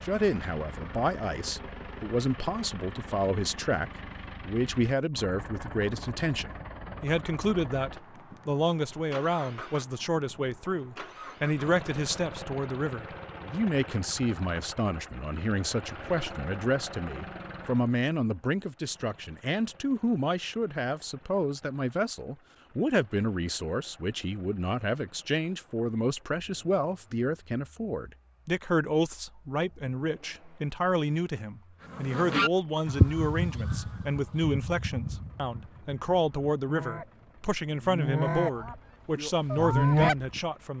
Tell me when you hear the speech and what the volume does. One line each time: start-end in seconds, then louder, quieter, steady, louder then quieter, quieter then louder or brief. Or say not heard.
0.0-40.7 steady.